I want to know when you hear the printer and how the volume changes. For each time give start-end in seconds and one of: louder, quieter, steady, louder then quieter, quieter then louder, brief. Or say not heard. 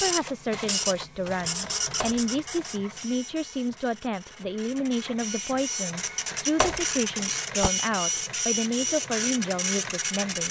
0.0-10.4 quieter then louder.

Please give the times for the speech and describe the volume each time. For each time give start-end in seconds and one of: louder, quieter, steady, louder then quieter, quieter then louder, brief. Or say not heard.
0.0-10.4 steady.